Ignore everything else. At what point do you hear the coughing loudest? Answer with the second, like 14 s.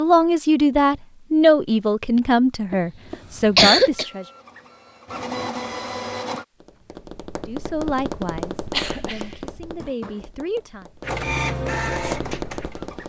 4 s.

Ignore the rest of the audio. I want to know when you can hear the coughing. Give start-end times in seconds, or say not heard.
2.7-4.0, 8.7-10.2.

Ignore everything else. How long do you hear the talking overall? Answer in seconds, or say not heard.
8 s.